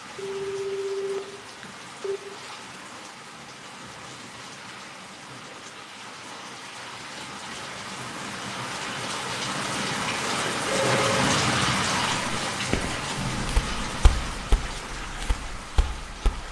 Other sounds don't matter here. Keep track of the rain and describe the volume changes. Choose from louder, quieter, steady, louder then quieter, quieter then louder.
louder then quieter.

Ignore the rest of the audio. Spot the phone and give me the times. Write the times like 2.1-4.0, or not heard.
0.1-2.2, 10.7-11.3.